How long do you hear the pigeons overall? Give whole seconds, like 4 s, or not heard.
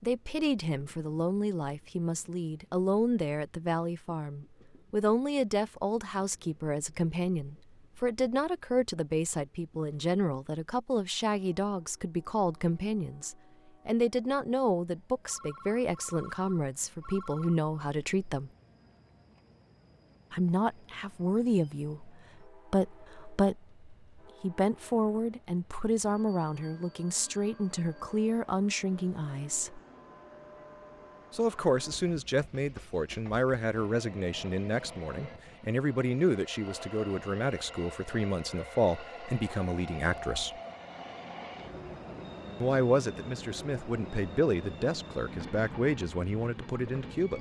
not heard.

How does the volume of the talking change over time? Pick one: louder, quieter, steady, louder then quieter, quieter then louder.
steady.